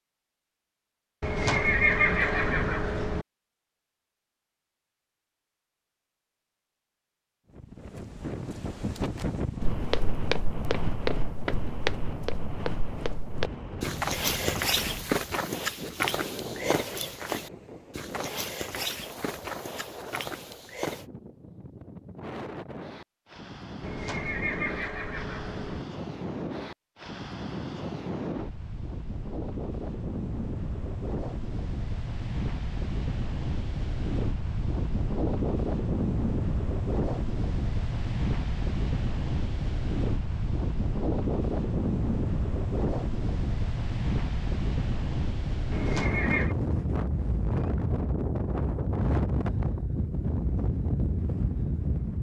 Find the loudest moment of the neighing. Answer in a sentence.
The volume of the neighing peaks at 2 seconds.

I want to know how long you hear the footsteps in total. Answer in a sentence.
You can hear the footsteps for 12 seconds altogether.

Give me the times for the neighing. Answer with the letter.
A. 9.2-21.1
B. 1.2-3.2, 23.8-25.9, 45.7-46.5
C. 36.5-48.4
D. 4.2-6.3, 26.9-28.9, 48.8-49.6
B.